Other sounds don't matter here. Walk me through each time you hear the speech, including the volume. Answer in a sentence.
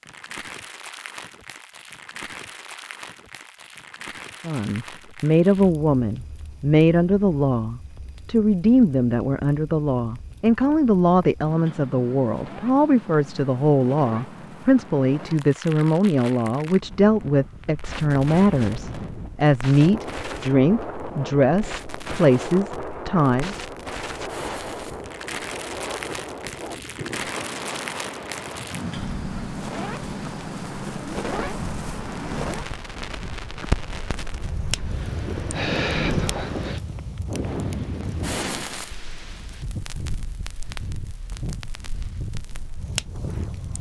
The speech can be heard from 4.5 to 23.6 s, at a steady volume.